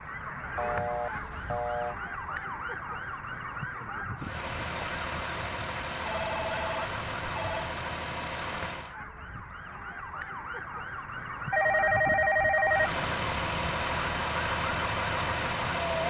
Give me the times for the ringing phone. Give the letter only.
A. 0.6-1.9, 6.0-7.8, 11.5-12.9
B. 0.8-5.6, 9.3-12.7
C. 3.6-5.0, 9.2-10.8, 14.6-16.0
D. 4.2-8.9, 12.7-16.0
A.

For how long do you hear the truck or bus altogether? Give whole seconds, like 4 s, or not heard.
8 s.